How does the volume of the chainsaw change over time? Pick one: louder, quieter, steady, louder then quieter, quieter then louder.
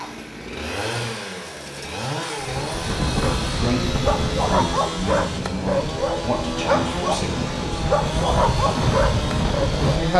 steady.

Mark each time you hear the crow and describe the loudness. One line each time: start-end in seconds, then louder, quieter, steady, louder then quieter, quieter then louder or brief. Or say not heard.
not heard.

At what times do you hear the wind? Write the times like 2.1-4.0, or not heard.
2.4-10.1.